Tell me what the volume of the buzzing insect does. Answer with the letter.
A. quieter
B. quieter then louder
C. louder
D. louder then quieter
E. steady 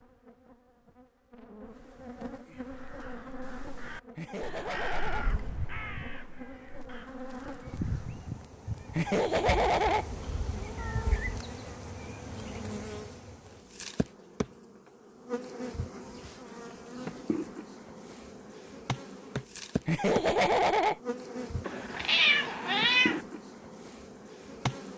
C.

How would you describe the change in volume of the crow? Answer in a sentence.
The loudness of the crow goes up, then down.